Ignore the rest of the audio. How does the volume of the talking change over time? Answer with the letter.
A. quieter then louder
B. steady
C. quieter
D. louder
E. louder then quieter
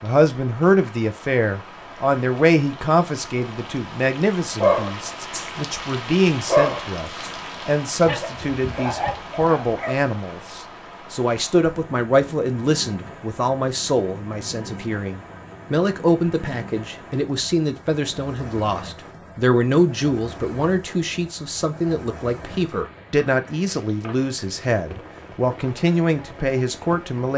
B.